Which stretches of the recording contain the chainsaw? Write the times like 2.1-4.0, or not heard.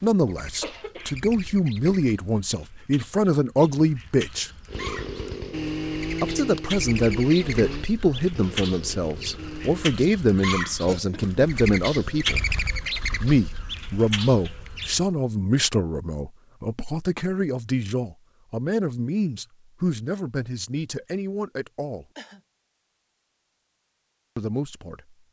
4.7-9.9.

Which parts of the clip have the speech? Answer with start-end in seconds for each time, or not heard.
0.0-4.5, 6.2-12.4, 13.2-22.1, 24.4-25.1.